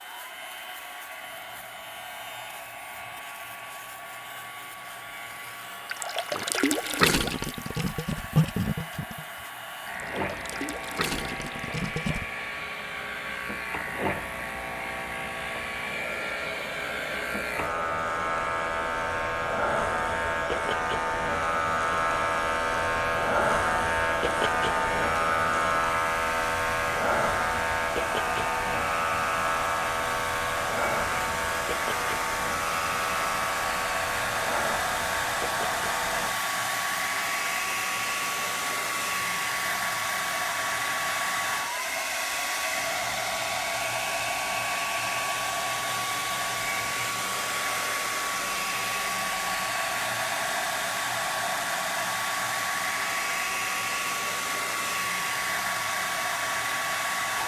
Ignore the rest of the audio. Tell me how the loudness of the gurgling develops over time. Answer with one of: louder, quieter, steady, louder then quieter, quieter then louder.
quieter then louder.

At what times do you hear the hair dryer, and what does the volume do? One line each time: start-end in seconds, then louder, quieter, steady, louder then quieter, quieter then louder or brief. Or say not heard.
0.0-57.4 louder.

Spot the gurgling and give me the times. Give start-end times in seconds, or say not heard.
5.8-12.2.